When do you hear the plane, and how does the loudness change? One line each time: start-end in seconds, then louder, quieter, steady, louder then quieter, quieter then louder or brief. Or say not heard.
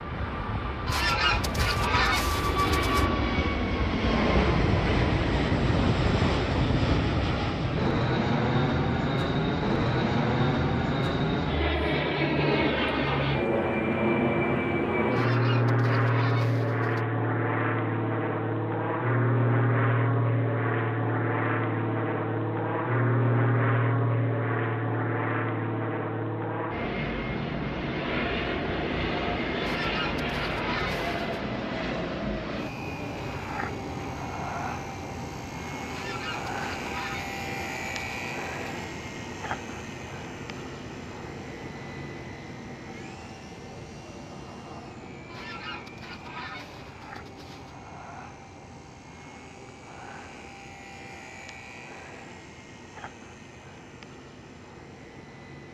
0.0-55.6 quieter.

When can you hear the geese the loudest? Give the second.
1 s.